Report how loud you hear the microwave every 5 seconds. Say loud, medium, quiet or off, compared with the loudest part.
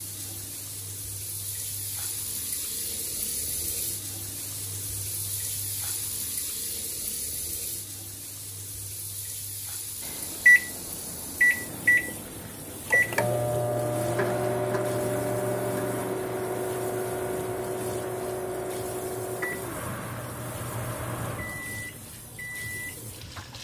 off, off, loud, medium, quiet.